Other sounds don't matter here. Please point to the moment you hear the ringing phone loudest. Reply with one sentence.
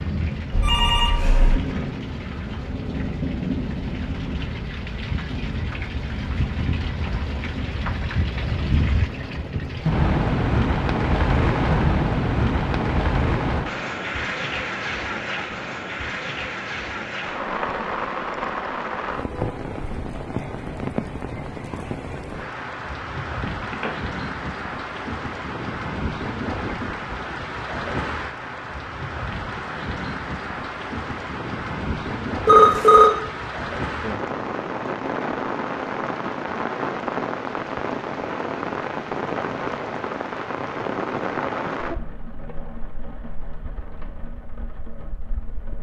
The loudest moment of the ringing phone is at 33 seconds.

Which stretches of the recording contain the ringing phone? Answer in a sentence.
You can hear the ringing phone from 0.5 to 1.6 s, from 23.4 to 23.9 s and from 32.5 to 33.1 s.